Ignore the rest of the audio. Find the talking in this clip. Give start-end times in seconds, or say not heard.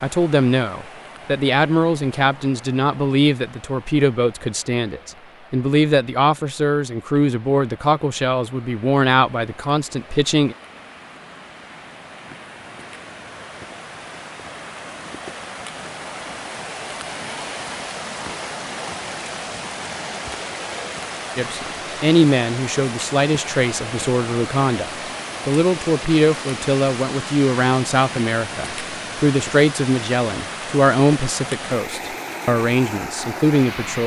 0.0-10.6, 21.4-34.0.